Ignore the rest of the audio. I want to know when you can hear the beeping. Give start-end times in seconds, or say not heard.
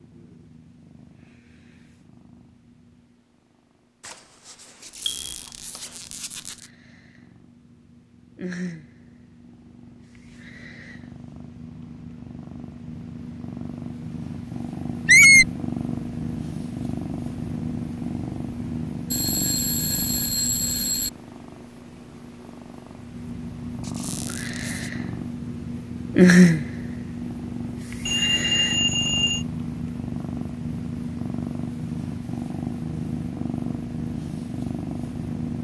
4.0-6.0, 19.1-21.1, 28.1-29.4.